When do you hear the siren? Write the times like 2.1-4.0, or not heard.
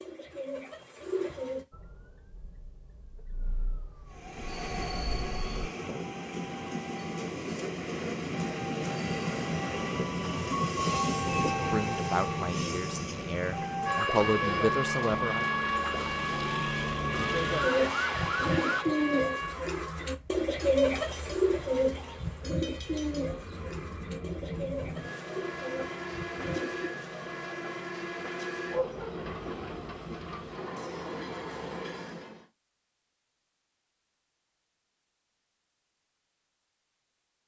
1.7-5.7, 14.2-18.9.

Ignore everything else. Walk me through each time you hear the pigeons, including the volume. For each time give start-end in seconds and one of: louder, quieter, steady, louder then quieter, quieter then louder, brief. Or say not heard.
0.0-1.6 brief
17.6-26.9 quieter.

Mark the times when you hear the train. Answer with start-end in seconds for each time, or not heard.
4.0-32.5.